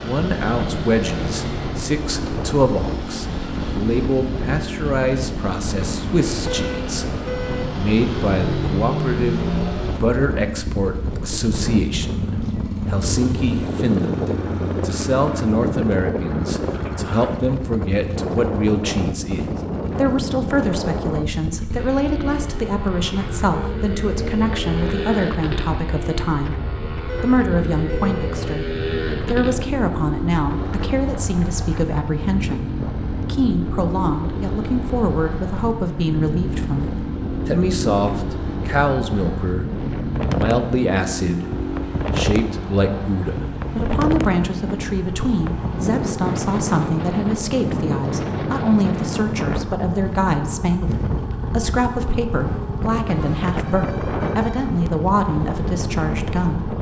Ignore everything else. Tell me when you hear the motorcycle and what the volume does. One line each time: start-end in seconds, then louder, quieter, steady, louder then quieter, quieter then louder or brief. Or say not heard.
0.0-56.7 steady.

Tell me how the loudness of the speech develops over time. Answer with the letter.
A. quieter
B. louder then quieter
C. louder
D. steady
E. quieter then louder
D.